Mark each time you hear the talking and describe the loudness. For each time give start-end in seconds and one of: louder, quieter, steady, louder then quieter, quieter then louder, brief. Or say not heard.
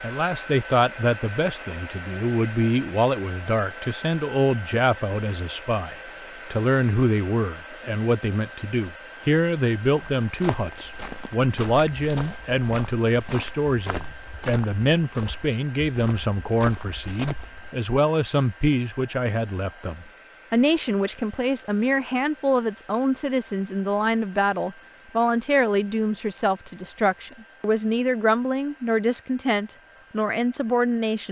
0.0-31.2 steady.